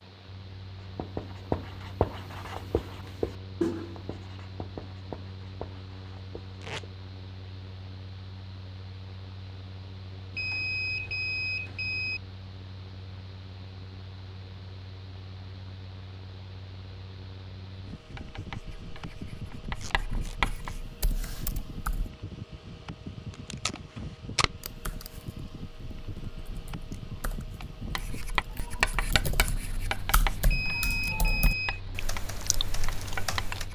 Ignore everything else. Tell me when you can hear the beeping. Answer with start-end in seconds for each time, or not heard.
10.3-12.2, 30.4-31.8.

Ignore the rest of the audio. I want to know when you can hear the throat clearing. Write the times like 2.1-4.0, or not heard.
not heard.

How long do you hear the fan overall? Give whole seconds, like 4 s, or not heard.
34 s.